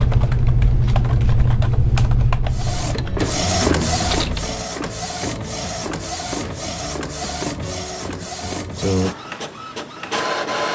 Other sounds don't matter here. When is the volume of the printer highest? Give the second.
4 s.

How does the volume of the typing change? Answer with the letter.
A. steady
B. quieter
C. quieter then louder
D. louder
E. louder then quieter
B.